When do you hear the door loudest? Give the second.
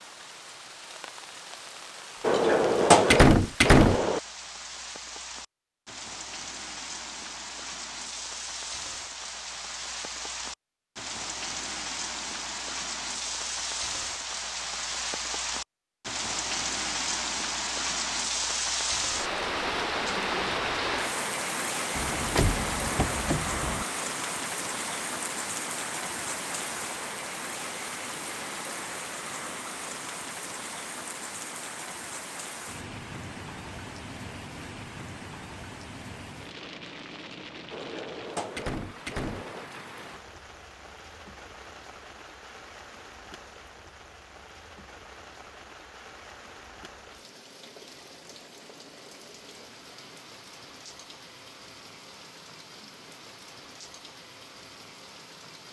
3 s.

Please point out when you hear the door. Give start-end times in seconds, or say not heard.
2.2-4.2, 21.9-23.9, 37.7-39.6.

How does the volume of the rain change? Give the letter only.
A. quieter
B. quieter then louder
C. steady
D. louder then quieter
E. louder
D.